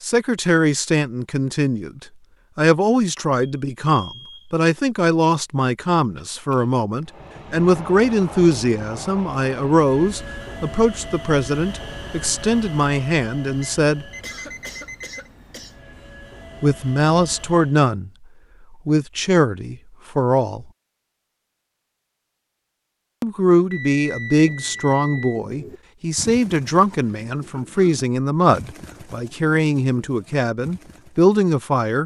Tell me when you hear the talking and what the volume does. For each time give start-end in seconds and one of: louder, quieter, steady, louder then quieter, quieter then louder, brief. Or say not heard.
0.0-14.1 steady
16.6-18.1 brief
18.7-20.6 brief
23.2-32.0 steady.